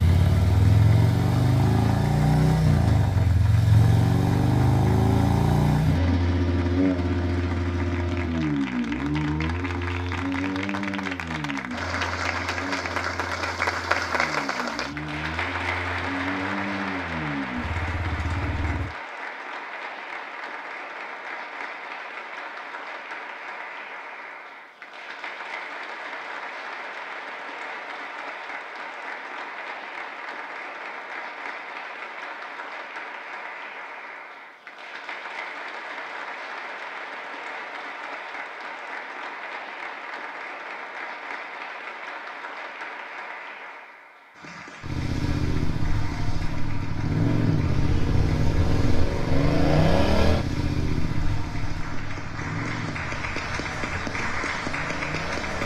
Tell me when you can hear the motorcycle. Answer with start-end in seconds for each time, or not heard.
0.0-18.9, 44.8-55.6.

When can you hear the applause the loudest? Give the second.
14 s.